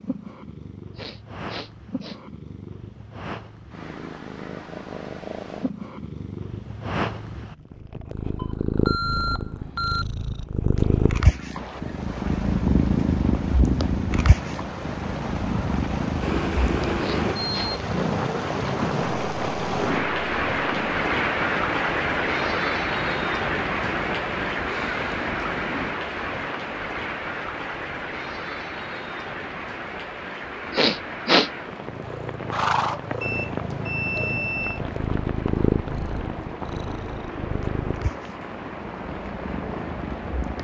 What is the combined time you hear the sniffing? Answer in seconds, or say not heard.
3 s.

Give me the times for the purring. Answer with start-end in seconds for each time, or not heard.
0.0-25.9, 31.9-40.5.